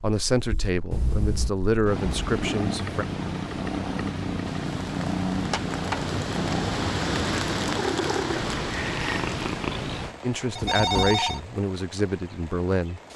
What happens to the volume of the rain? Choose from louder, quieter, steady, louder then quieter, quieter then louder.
louder then quieter.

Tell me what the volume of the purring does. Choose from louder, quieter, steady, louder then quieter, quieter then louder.
louder.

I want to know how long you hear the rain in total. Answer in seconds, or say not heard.
9 s.